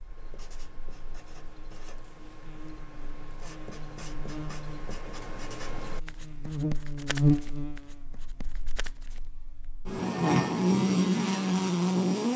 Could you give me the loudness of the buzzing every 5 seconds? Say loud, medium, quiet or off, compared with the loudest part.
quiet, medium, loud.